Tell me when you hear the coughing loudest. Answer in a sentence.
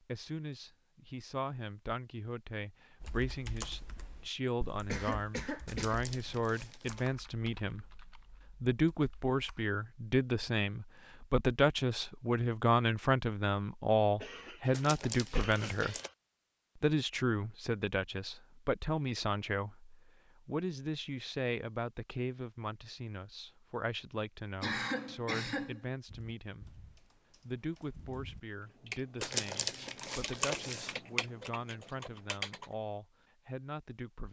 The loudest moment of the coughing is at 25 seconds.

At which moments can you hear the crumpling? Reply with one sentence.
You can hear the crumpling from 5.7 to 7.0 s, from 14.7 to 16.1 s and from 29.2 to 30.9 s.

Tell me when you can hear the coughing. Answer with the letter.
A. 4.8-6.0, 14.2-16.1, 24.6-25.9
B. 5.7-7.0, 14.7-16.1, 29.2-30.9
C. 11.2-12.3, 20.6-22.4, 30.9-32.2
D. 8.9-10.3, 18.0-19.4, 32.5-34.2
A.